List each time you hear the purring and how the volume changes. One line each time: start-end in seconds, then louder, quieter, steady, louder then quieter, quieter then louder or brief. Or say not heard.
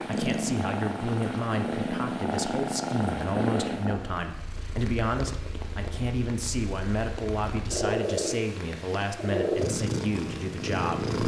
0.0-11.2 quieter then louder.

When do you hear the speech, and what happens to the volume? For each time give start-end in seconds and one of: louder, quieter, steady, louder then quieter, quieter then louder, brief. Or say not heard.
0.1-11.2 steady.